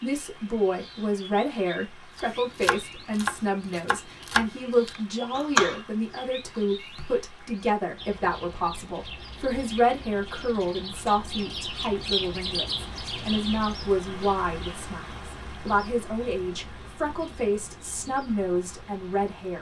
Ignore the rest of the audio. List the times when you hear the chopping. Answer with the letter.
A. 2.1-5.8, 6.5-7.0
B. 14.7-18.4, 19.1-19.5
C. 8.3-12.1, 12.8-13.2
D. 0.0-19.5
A.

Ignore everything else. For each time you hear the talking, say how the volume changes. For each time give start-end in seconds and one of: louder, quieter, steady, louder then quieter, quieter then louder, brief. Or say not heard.
0.0-19.5 steady.